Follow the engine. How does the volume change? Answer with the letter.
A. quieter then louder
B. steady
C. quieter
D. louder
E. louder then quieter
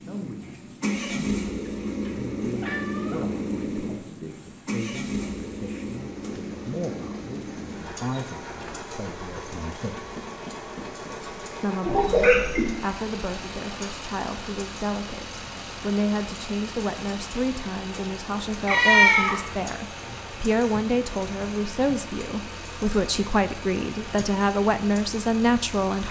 C.